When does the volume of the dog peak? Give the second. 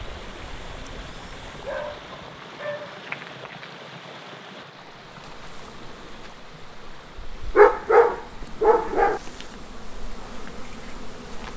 8 s.